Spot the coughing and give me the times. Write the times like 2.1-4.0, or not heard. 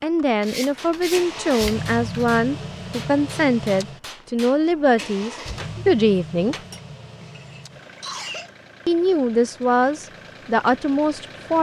7.2-8.5.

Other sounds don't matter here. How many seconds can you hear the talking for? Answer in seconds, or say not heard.
9 s.